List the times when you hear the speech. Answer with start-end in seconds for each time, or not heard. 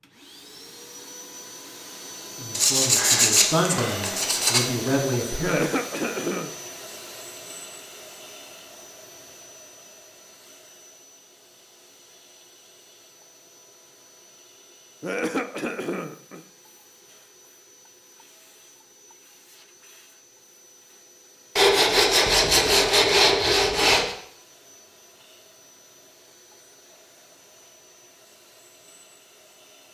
2.4-5.6.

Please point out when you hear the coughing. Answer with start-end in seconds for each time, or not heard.
5.4-6.5, 15.0-16.4.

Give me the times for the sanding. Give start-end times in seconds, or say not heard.
2.5-4.7, 21.6-24.1.